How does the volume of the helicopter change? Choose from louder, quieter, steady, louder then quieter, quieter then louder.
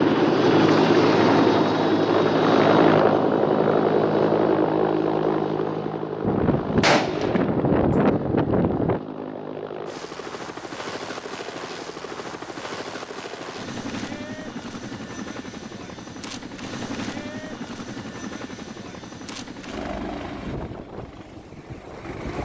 quieter.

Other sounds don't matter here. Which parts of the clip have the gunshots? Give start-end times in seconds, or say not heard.
6.2-9.0.